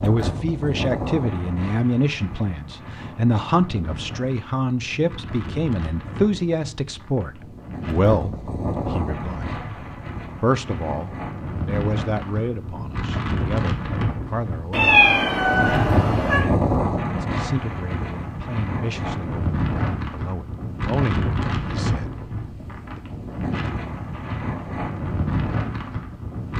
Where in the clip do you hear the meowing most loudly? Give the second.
15 s.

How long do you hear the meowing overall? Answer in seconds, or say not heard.
2 s.